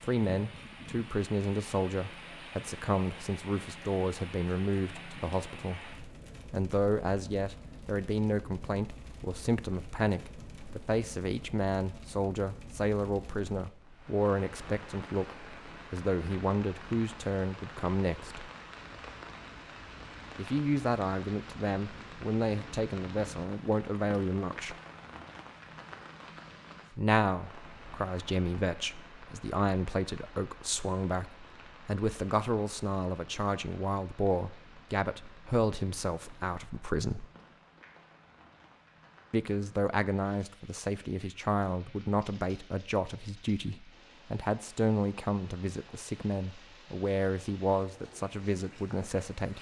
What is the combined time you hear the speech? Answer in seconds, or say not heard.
43 s.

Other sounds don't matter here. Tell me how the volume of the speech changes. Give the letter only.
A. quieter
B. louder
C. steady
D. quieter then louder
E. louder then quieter
C.